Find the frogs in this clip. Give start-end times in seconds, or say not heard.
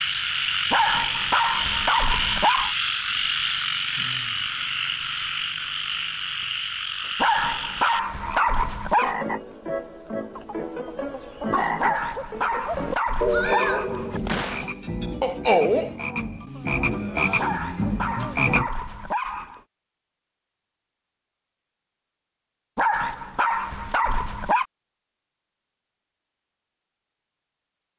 0.0-18.7.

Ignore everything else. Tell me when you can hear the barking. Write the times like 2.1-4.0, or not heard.
0.7-2.8, 7.2-9.2, 11.8-14.7, 17.4-19.6, 22.8-24.6.